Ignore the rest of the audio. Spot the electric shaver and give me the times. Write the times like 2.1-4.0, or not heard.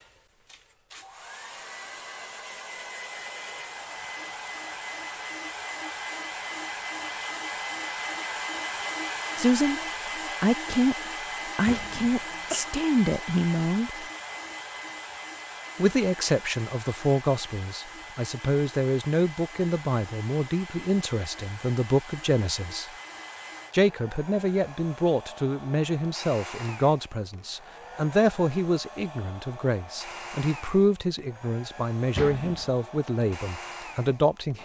not heard.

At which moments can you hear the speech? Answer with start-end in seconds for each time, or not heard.
9.3-9.8, 10.4-10.9, 11.6-14.1, 15.8-22.9, 23.7-34.6.